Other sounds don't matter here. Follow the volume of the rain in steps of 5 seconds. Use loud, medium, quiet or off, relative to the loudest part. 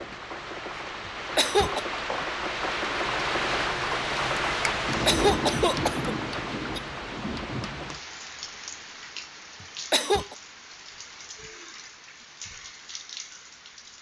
loud, loud, quiet.